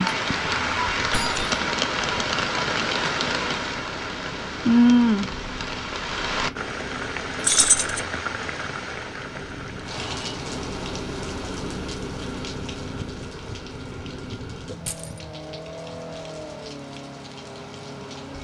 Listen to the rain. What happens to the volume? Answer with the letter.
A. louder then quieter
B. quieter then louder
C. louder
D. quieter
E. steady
D.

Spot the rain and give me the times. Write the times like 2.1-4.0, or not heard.
0.0-18.3.